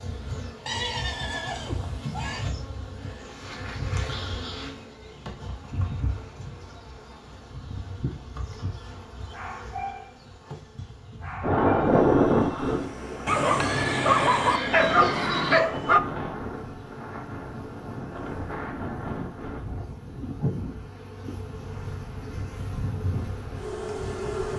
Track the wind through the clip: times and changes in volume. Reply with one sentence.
The wind can be heard from 11.4 to 24.5 s, getting quieter.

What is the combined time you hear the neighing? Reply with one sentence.
The neighing can be heard for 4 seconds in total.